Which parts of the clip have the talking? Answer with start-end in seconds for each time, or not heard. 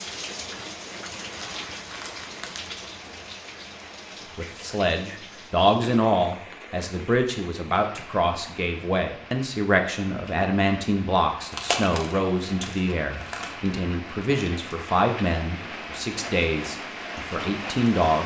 4.3-18.2.